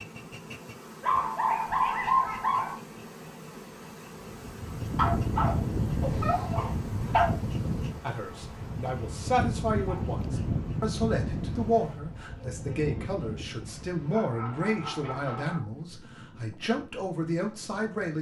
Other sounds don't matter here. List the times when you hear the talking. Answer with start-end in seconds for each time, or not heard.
8.0-18.1.